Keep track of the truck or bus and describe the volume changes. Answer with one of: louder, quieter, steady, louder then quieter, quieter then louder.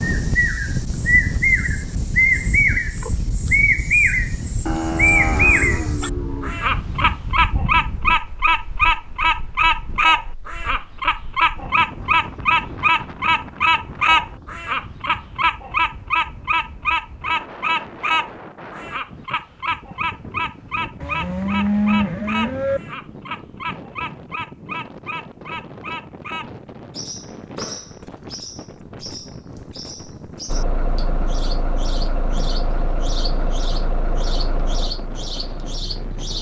quieter.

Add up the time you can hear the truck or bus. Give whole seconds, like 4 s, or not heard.
6 s.